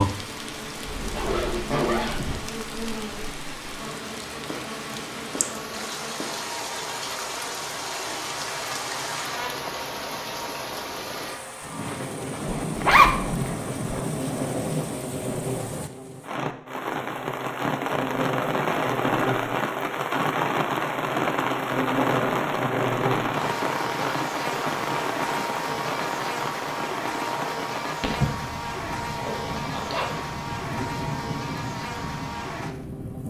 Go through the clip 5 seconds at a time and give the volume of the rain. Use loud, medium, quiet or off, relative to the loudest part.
medium, medium, medium, loud, loud, medium, medium.